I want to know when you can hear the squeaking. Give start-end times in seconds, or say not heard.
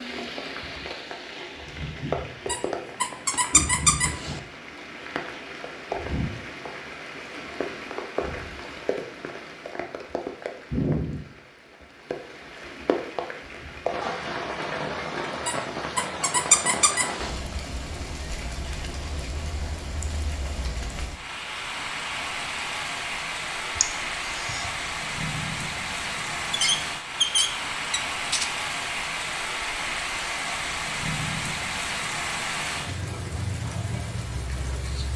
2.5-4.4, 15.4-17.4, 26.5-28.5.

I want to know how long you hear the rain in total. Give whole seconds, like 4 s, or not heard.
35 s.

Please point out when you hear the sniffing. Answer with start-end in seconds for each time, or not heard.
23.8-24.7.